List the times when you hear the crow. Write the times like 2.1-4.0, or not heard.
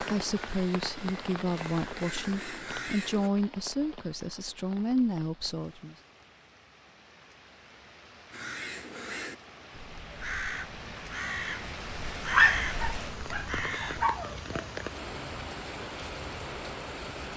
0.0-3.3, 8.3-14.1.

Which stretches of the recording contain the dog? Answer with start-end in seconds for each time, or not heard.
12.3-14.7.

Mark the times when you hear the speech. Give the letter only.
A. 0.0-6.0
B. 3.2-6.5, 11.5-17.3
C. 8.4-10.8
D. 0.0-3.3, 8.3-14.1
A.